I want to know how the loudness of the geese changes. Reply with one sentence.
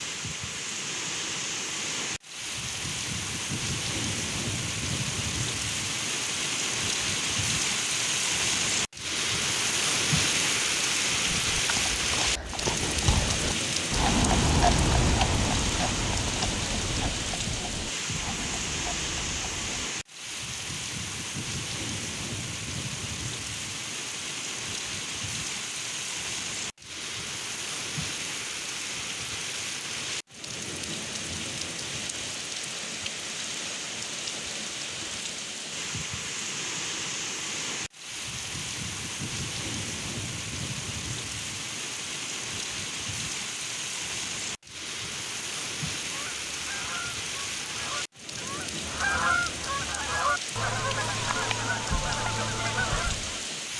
The volume of the geese goes up.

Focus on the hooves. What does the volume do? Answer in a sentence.
The volume of the hooves goes up, then down.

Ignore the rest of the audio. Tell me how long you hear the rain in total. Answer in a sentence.
The rain can be heard for 54 seconds in total.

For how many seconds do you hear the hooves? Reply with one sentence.
You can hear the hooves for 9 seconds altogether.